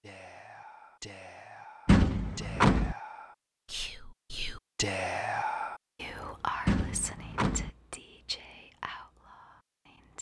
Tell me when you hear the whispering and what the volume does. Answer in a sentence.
The whispering can be heard from 0.0 to 10.1 s, getting louder then quieter.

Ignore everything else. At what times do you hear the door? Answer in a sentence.
The door can be heard from 1.9 to 3.0 s and from 6.7 to 7.7 s.